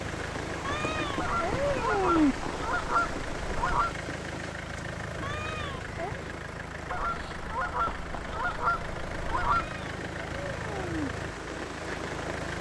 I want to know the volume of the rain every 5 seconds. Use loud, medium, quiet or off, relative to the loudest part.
loud, medium, loud.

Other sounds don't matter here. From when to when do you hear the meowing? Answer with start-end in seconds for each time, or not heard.
0.6-2.4, 5.2-6.2, 9.6-11.1.